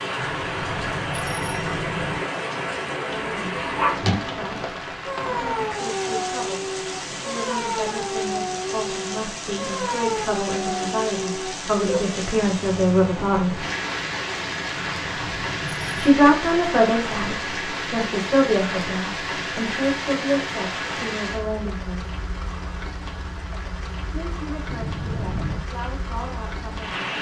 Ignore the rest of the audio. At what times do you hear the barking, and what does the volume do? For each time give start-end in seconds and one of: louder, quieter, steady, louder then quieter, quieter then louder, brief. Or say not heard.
3.0-12.2 steady.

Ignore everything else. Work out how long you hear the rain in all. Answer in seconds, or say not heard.
27 s.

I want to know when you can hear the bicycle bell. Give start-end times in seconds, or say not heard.
0.2-2.2, 14.7-16.2, 24.6-25.6.